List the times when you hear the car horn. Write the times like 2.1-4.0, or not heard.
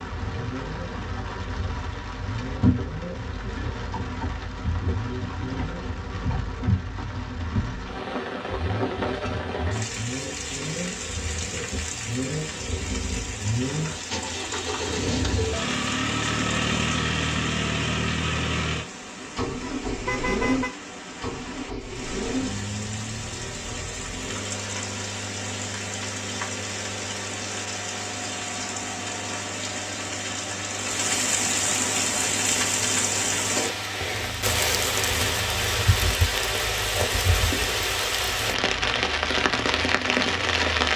20.1-20.7.